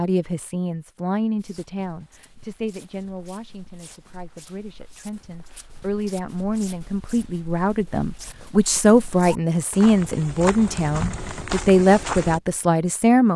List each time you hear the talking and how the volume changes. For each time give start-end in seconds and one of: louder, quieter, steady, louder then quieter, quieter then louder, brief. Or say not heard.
0.0-13.3 quieter then louder.